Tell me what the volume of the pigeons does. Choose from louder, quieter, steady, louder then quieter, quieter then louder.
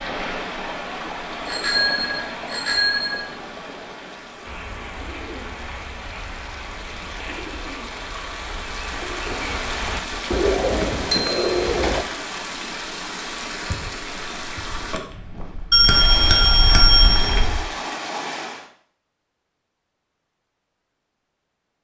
louder.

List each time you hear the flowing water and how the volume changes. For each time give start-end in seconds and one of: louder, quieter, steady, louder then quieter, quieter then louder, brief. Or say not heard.
0.0-18.7 quieter then louder.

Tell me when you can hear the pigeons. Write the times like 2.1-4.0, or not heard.
4.5-12.1.